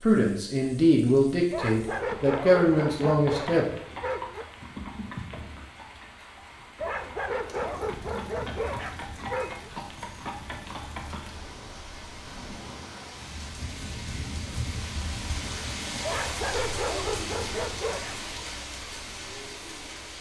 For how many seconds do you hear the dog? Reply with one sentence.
The dog can be heard for 8 seconds in total.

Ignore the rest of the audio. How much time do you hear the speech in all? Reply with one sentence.
You can hear the speech for 4 seconds altogether.